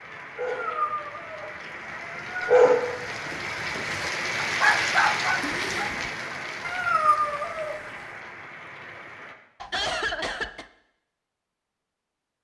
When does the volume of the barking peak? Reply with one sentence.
The loudest moment of the barking is at 3 seconds.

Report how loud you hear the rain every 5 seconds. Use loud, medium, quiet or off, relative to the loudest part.
loud, loud, off.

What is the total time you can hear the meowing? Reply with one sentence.
You can hear the meowing for 3 seconds altogether.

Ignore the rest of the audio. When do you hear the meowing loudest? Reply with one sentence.
The volume of the meowing peaks at 7 seconds.